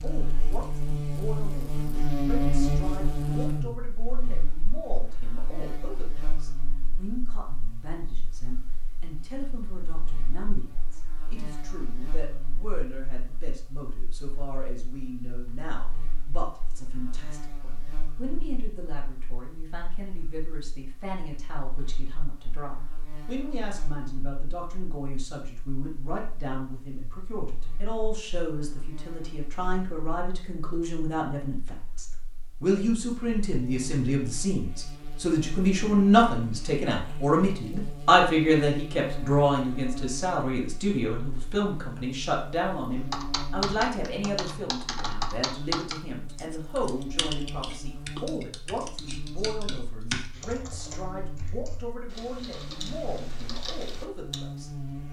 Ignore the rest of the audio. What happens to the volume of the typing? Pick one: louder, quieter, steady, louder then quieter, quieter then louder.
quieter.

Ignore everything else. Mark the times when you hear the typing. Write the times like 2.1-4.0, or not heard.
43.1-54.4.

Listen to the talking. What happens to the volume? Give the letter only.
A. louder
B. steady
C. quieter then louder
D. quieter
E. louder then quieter
E.